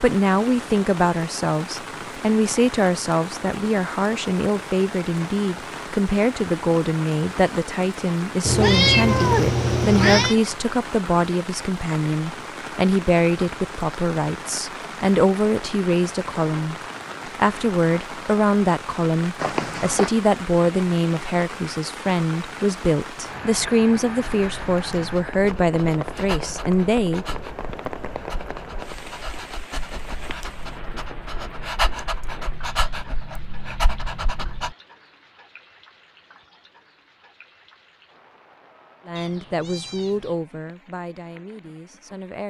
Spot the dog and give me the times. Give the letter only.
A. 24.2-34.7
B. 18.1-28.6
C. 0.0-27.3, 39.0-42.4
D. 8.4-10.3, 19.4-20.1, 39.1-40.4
A.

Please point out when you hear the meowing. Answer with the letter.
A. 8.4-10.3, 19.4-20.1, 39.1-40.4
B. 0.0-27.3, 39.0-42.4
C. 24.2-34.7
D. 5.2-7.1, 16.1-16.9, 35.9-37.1
A.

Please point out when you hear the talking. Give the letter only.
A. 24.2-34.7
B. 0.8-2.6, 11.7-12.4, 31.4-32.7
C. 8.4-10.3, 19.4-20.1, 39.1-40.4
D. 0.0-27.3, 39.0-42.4
D.